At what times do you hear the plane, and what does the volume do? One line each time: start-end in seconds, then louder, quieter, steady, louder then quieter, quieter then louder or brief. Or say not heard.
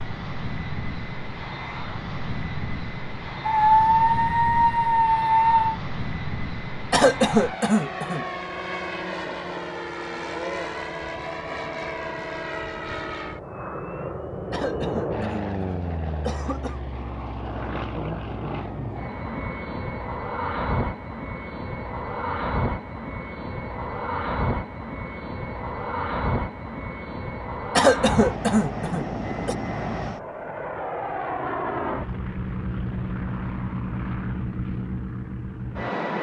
0.0-36.1 steady.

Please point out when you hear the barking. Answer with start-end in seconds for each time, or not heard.
3.5-5.8.